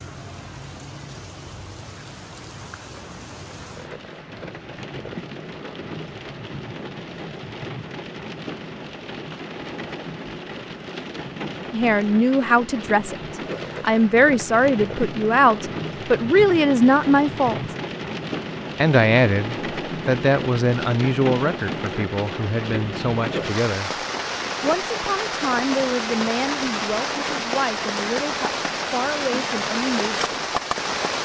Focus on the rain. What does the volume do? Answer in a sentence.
The volume of the rain goes up.